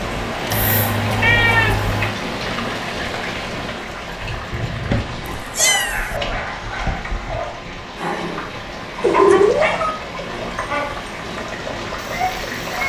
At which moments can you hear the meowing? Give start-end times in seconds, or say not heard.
0.5-2.1, 5.5-6.2, 9.0-10.0.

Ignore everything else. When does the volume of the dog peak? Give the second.
9 s.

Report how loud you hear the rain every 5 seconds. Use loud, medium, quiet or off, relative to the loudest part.
loud, medium, loud.